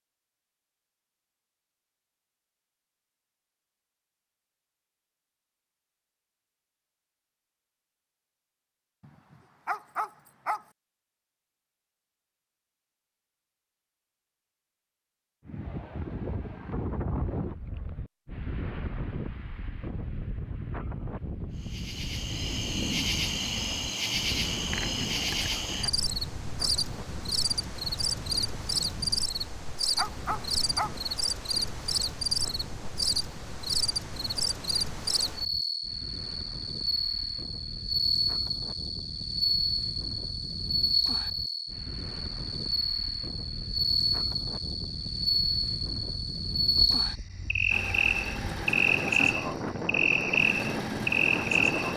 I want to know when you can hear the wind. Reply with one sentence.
You can hear the wind from 15.4 to 51.9 s.